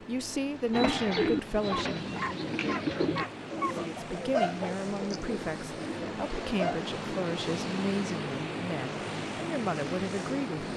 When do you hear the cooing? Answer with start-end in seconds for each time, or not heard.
0.7-6.8.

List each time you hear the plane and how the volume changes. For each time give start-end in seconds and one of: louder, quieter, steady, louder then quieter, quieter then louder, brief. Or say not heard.
0.0-10.7 louder.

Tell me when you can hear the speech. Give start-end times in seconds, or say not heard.
0.1-2.0, 3.7-10.7.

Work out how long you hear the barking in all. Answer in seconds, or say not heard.
2 s.